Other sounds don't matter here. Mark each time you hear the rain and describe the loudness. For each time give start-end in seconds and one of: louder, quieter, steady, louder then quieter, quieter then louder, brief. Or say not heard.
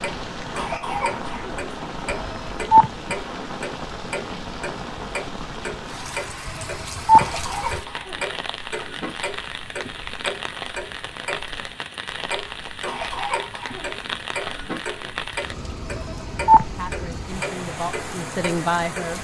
0.0-19.1 steady.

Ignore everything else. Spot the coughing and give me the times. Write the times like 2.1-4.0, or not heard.
0.5-1.6, 7.2-9.2, 12.8-14.8.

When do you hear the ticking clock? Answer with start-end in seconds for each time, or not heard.
0.0-19.1.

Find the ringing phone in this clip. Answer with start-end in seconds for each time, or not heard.
2.1-2.9, 6.5-7.2, 15.8-16.6.